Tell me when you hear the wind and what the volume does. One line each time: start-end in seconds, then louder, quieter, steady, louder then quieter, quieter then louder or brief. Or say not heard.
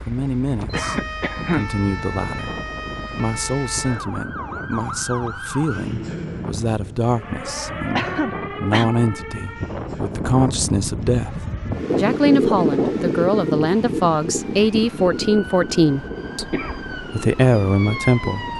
0.0-18.5 louder then quieter.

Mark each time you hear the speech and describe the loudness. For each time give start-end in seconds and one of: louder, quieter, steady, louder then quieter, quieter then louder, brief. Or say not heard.
0.1-18.4 louder.